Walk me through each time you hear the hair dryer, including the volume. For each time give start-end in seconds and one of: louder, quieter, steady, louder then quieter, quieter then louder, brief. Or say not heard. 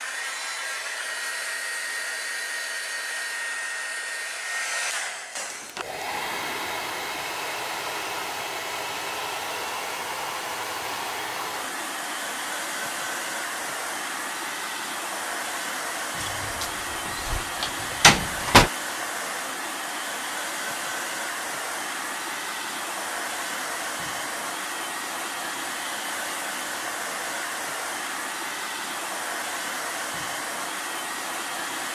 0.0-31.9 steady.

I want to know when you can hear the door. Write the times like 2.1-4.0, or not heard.
16.2-18.7.